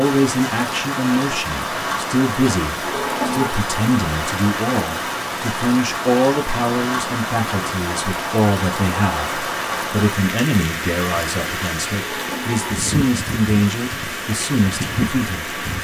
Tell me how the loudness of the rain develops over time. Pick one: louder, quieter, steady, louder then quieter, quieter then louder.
steady.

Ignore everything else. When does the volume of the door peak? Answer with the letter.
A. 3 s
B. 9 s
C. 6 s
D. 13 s
A.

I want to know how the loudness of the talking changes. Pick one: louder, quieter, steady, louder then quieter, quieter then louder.
steady.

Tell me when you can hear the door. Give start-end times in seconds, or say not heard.
2.8-3.6, 11.9-12.9.